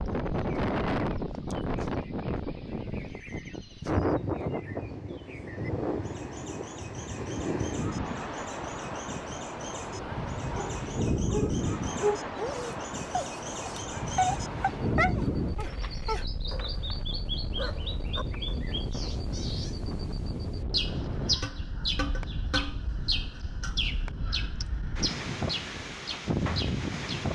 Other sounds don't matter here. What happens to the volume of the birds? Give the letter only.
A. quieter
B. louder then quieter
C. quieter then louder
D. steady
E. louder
E.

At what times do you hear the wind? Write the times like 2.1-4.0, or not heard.
0.0-27.2.